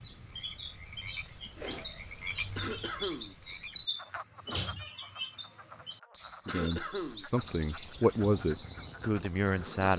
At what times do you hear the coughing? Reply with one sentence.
You can hear the coughing from 2.5 to 3.4 s and from 6.5 to 7.2 s.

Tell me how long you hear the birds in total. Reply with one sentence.
The birds can be heard for 10 seconds in total.